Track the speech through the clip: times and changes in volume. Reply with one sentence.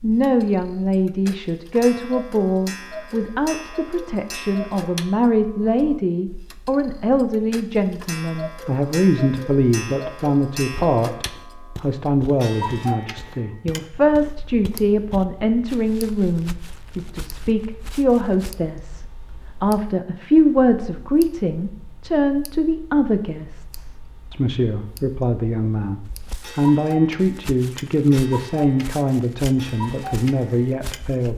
The speech can be heard from 0.0 to 31.3 s, at a steady volume.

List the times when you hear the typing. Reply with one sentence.
You can't hear the typing here.